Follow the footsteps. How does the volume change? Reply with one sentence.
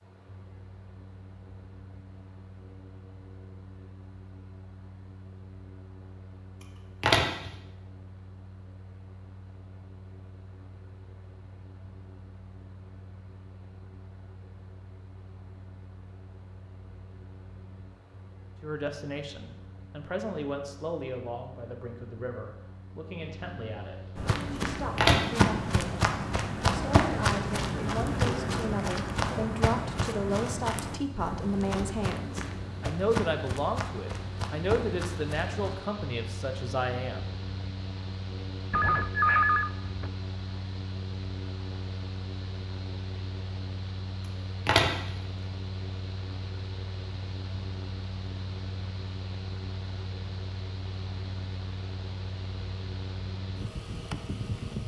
The volume of the footsteps goes down.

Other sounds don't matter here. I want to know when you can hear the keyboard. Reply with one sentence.
The keyboard can't be heard in this clip.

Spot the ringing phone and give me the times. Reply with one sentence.
The ringing phone can be heard from 38.7 to 40.1 s.